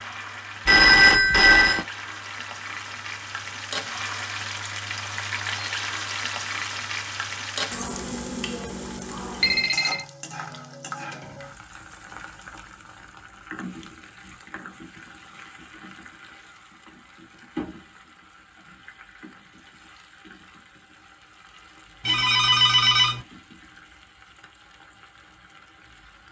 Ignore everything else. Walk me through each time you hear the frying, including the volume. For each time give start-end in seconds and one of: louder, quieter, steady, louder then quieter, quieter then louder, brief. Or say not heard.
0.0-26.2 quieter.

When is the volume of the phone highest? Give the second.
1 s.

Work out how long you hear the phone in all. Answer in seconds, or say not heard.
3 s.